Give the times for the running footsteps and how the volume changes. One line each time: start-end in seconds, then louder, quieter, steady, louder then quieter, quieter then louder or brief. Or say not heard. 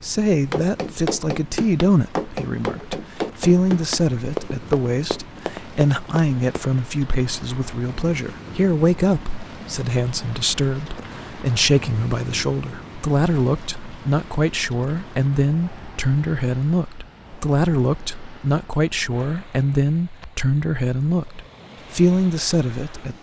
0.3-6.8 quieter.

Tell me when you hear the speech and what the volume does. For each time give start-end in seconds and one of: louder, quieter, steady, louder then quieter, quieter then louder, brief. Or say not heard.
0.0-23.1 steady.